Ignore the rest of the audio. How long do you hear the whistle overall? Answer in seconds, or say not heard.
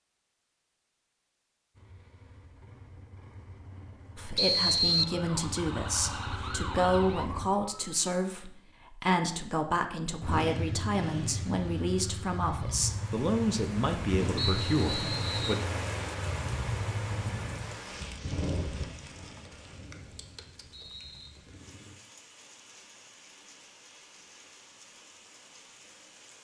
4 s.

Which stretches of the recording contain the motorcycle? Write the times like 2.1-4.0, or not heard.
1.7-7.5, 10.2-21.9.